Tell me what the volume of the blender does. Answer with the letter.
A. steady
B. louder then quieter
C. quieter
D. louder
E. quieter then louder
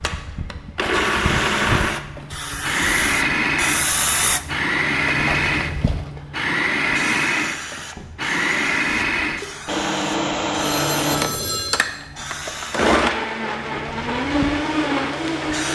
A.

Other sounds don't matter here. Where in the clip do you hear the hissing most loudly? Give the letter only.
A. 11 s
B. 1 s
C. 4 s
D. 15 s
C.